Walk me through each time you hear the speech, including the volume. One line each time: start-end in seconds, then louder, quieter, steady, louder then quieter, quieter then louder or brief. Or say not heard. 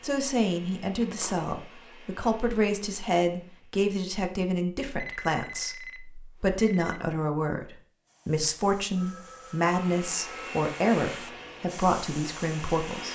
0.0-13.1 steady.